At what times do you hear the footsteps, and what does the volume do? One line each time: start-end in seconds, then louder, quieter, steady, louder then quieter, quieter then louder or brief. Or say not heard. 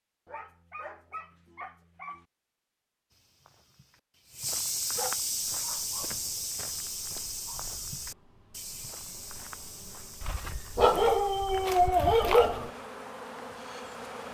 3.1-11.9 quieter.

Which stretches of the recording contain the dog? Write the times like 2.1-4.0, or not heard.
0.2-2.2, 5.0-6.2, 7.2-7.6, 10.2-12.7.